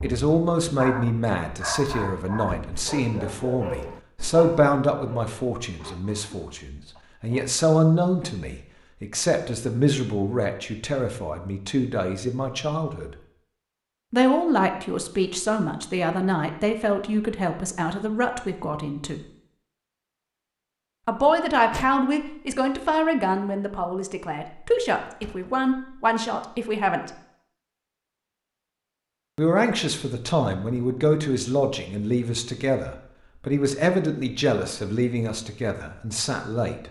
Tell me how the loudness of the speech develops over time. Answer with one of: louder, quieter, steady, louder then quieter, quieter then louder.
steady.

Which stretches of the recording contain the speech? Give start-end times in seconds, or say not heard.
0.0-13.2, 14.1-19.2, 21.1-27.1, 29.4-36.8.